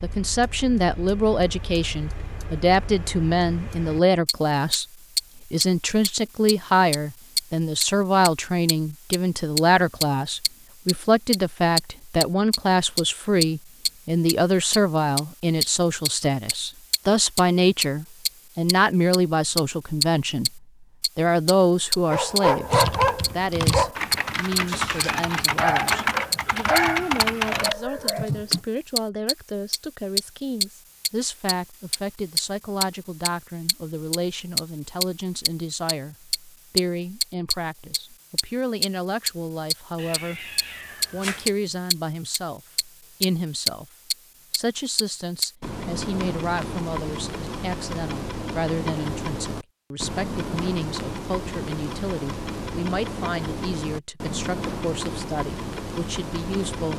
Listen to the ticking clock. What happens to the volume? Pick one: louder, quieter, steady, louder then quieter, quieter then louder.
louder then quieter.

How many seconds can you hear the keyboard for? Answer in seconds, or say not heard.
6 s.